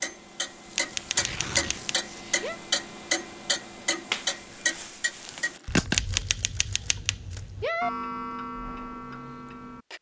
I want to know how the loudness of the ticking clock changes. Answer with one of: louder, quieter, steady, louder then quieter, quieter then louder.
quieter then louder.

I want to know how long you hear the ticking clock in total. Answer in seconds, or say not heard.
10 s.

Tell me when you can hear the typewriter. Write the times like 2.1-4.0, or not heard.
0.7-2.6, 5.9-7.9.